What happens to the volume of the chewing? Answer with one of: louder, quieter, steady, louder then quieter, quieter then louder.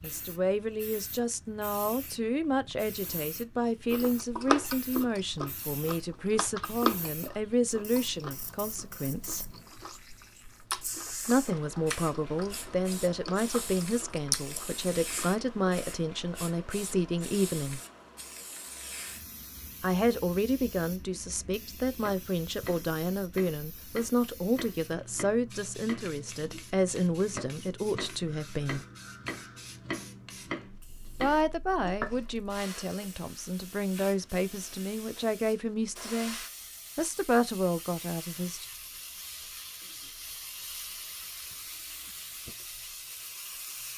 quieter then louder.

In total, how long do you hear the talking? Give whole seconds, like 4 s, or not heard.
32 s.